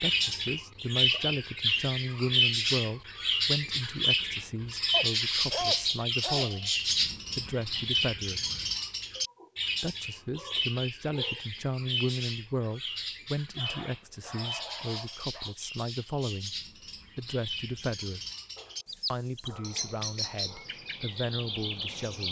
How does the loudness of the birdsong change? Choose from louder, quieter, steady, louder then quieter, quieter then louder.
quieter.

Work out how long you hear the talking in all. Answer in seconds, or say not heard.
19 s.